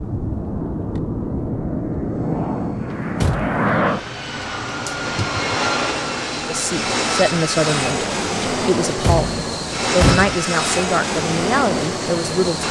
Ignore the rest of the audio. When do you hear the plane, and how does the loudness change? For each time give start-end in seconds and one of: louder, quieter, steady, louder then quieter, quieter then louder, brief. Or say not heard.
0.0-12.6 steady.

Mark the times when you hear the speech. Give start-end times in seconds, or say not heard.
6.5-12.6.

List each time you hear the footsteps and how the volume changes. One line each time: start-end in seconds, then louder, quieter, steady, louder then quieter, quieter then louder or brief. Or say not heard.
not heard.